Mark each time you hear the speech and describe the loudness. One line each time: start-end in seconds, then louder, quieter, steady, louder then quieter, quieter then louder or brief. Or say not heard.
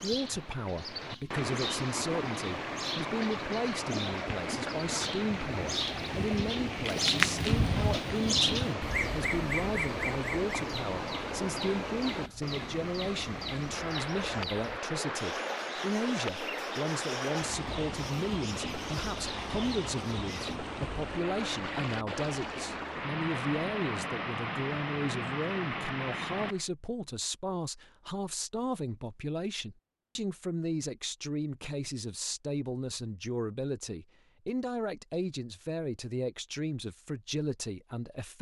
0.0-38.3 steady.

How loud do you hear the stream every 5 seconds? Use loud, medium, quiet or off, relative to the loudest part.
loud, loud, loud, loud, loud, loud, off, off.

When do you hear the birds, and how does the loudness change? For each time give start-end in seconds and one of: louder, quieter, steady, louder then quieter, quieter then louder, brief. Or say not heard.
0.0-20.6 louder then quieter.